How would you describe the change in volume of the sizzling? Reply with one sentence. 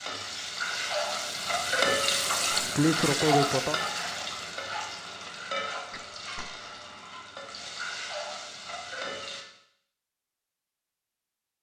The volume of the sizzling goes down.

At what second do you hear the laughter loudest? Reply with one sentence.
The loudest moment of the laughter is at 3 seconds.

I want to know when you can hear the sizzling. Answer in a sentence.
The sizzling can be heard from 0.0 to 9.4 s.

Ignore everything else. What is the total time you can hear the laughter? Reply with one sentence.
The laughter can be heard for 2 seconds in total.